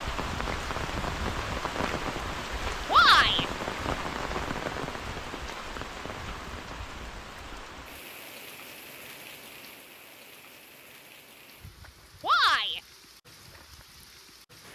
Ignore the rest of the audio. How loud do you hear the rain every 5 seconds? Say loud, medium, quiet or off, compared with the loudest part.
loud, medium, quiet.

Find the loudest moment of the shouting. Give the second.
3 s.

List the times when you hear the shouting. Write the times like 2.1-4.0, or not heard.
2.9-3.5, 12.2-12.8.